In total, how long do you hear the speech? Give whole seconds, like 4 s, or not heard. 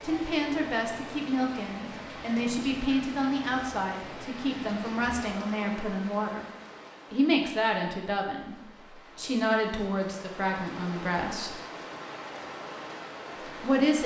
11 s.